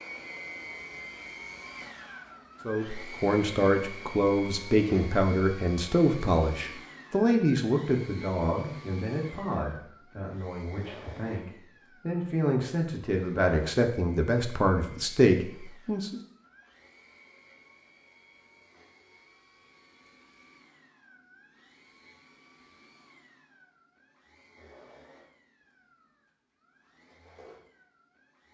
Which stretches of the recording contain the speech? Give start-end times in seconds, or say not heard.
2.6-16.2.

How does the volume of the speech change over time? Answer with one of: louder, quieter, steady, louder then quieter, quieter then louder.
quieter then louder.